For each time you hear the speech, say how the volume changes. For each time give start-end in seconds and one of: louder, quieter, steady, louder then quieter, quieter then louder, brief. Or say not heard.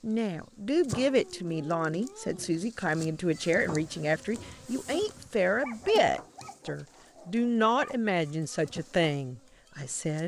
0.0-10.2 steady.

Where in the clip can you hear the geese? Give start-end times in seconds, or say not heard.
not heard.